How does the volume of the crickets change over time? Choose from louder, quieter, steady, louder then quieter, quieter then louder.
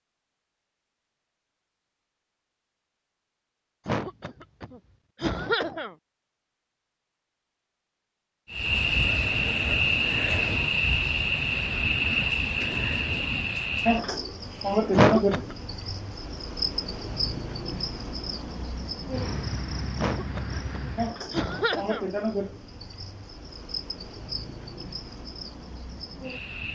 quieter.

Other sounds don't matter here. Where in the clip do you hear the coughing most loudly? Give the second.
15 s.